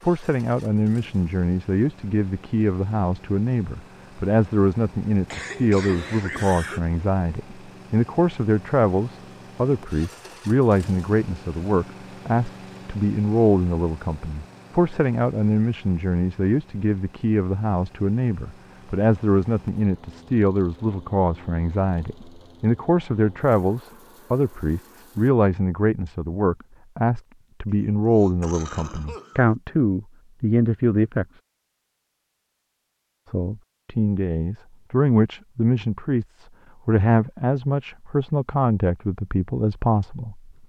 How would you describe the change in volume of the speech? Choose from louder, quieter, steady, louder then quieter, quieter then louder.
steady.